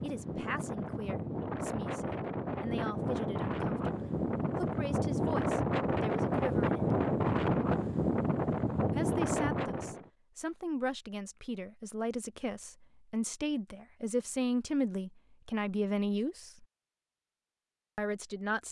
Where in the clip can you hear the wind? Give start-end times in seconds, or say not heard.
0.0-10.1.